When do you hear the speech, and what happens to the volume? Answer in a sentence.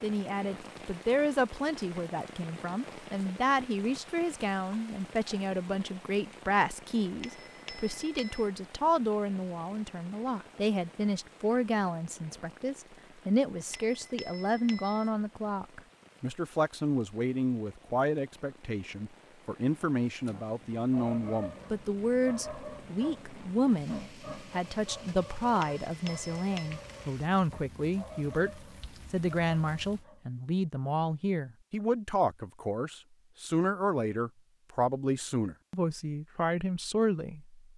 You can hear the speech from 0.0 to 37.6 s, at a steady volume.